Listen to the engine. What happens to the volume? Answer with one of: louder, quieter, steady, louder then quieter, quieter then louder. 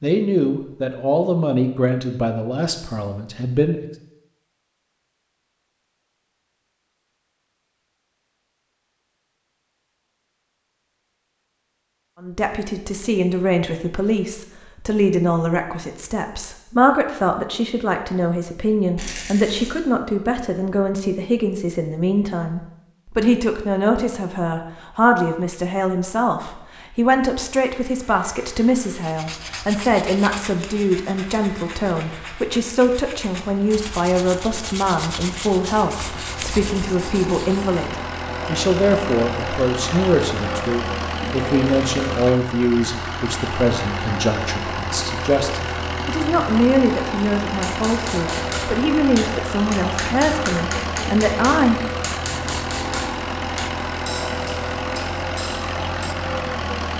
louder.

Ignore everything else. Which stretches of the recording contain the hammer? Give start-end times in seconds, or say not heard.
47.6-56.1.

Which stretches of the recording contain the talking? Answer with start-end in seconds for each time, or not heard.
0.0-3.9, 12.2-51.8.